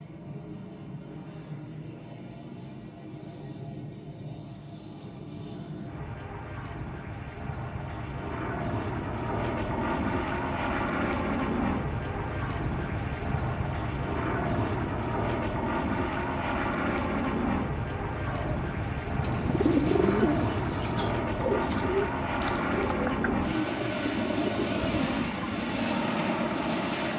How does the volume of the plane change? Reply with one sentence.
The volume of the plane goes up.